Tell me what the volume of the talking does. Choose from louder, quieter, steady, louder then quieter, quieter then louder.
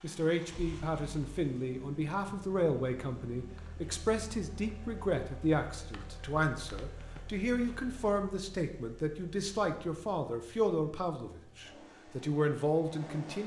steady.